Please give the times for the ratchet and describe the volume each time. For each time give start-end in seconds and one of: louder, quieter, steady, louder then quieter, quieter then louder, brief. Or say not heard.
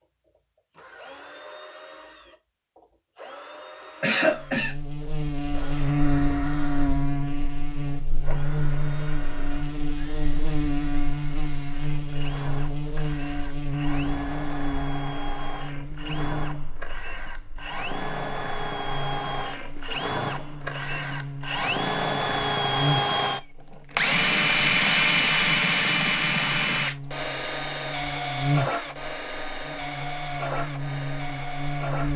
not heard.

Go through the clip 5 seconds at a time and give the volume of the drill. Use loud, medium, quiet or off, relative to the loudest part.
quiet, quiet, quiet, medium, loud, loud, medium.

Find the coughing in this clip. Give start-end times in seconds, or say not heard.
4.0-4.8.